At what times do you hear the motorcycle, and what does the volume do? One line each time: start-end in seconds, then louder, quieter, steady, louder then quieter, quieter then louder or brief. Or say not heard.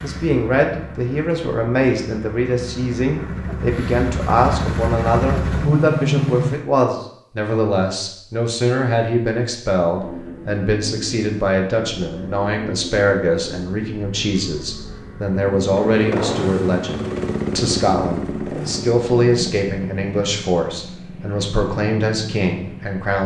0.0-6.7 louder
9.9-23.1 louder then quieter.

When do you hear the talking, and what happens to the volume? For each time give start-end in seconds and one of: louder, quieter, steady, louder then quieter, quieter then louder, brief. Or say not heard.
0.0-23.2 steady.